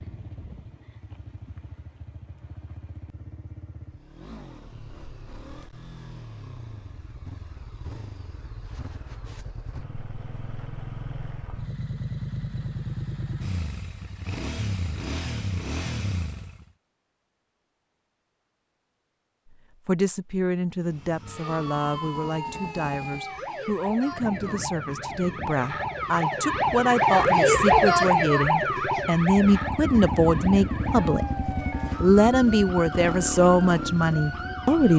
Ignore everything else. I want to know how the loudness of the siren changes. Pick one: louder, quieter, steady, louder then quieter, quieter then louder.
louder then quieter.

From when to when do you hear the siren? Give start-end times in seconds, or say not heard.
21.2-34.9.